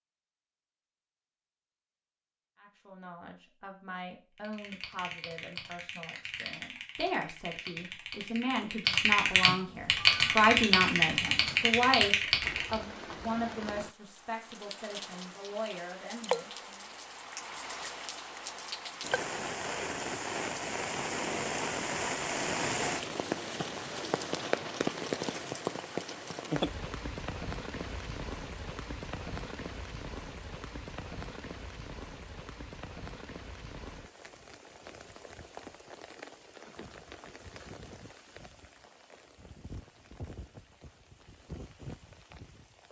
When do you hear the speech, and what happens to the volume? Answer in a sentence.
The speech can be heard from 2.6 to 16.9 s, getting louder then quieter.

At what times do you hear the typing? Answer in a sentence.
The typing can be heard from 4.3 to 12.8 s.